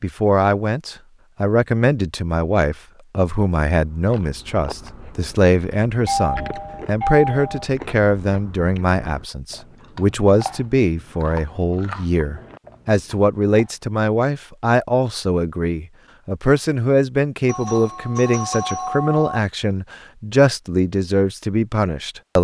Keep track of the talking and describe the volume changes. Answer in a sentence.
The volume of the talking stays about the same.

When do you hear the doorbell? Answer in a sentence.
You can hear the doorbell from 6.0 to 7.7 s and from 17.4 to 19.4 s.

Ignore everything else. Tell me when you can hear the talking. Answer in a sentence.
You can hear the talking from 0.0 to 22.3 s.